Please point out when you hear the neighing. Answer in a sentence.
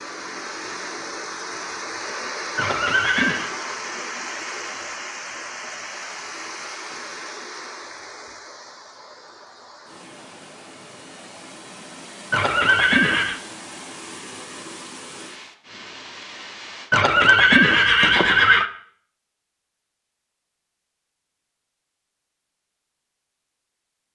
The neighing can be heard from 2.5 to 3.5 s, from 12.3 to 13.4 s and from 16.9 to 18.7 s.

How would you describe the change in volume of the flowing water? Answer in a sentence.
The volume of the flowing water goes down.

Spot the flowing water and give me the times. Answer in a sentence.
You can hear the flowing water from 0.0 to 16.9 s.